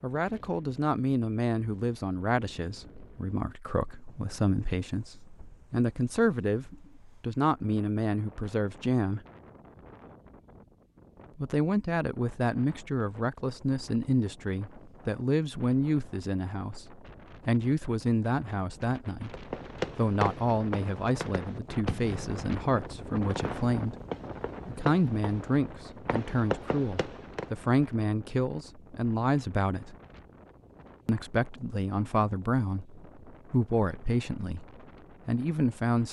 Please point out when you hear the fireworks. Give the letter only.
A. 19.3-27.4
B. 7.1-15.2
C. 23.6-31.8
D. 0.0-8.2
A.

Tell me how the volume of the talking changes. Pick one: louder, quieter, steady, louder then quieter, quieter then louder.
steady.